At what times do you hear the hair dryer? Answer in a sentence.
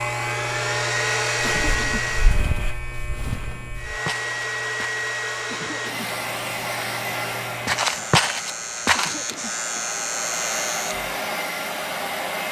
The hair dryer can be heard from 0.0 to 2.5 s and from 3.8 to 12.4 s.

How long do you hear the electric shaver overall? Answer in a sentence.
The electric shaver can be heard for 11 seconds in total.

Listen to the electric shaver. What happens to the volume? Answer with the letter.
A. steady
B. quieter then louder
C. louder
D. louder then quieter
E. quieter
B.